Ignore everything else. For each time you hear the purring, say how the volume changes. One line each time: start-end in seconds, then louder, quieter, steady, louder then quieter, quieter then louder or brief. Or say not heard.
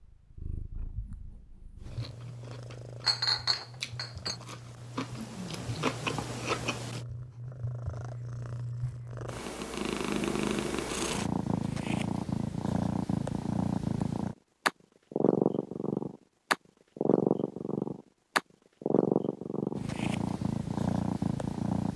0.0-21.9 louder.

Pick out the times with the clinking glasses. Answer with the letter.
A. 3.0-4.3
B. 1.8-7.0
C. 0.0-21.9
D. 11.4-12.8
A.